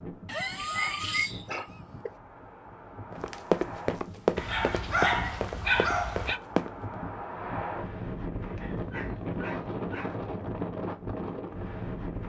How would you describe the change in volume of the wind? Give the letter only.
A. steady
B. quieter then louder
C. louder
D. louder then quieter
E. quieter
C.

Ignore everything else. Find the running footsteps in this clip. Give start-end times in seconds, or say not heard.
3.1-7.0.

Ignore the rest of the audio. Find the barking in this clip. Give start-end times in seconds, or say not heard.
0.2-2.1, 4.3-6.4, 8.6-10.2.